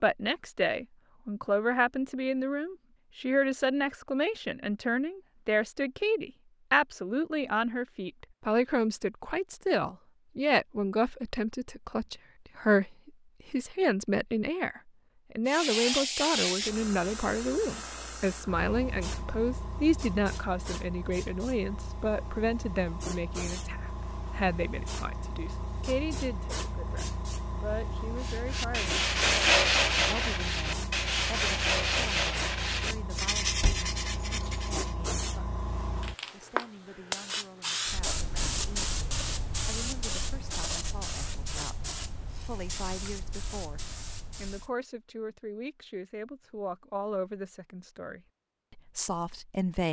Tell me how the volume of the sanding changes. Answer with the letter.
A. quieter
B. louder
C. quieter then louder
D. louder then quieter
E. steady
A.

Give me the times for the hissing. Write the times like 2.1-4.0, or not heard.
15.4-44.7.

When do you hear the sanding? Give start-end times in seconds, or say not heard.
28.1-35.0.